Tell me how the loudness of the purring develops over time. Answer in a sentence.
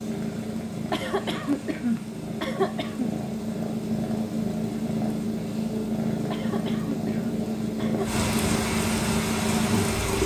The loudness of the purring goes up.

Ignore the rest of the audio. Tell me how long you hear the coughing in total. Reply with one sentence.
You can hear the coughing for 4 seconds altogether.